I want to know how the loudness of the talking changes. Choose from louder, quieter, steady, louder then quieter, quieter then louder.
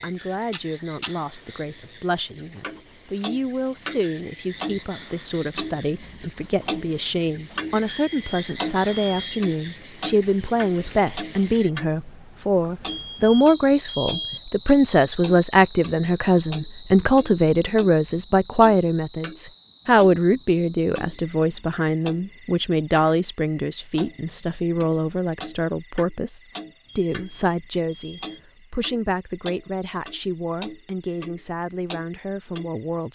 louder then quieter.